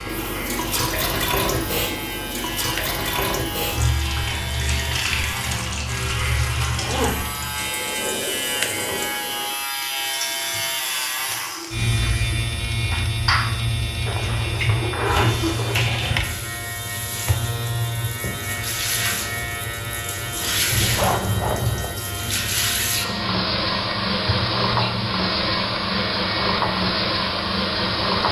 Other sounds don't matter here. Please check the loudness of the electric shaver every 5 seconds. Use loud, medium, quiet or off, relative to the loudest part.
medium, loud, loud, loud, medium, medium.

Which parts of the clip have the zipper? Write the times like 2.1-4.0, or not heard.
6.7-7.2, 14.1-15.8, 20.7-21.9.